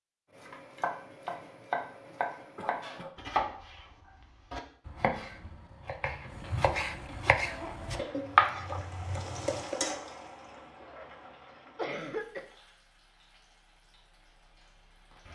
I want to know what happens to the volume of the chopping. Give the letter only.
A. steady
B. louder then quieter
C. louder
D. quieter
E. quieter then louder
C.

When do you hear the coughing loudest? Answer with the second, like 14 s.
12 s.